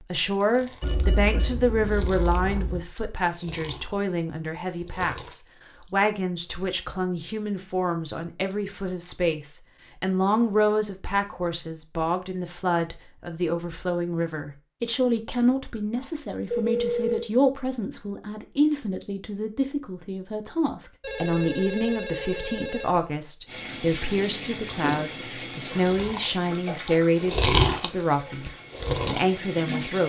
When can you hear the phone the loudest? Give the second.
17 s.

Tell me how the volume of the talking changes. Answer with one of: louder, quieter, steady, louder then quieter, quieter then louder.
steady.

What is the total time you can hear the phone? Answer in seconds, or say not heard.
5 s.